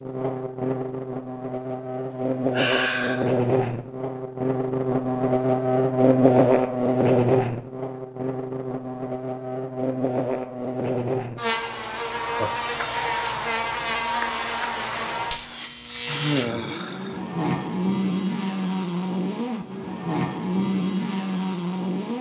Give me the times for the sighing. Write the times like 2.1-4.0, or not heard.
2.1-3.8, 12.2-12.6, 16.1-17.2.